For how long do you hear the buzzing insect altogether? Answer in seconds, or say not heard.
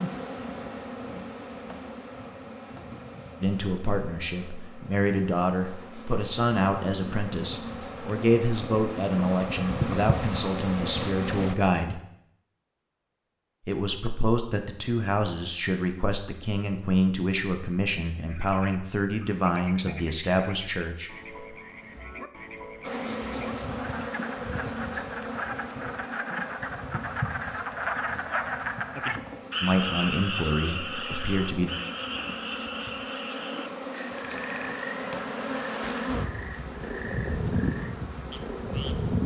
28 s.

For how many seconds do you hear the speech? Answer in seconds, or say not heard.
18 s.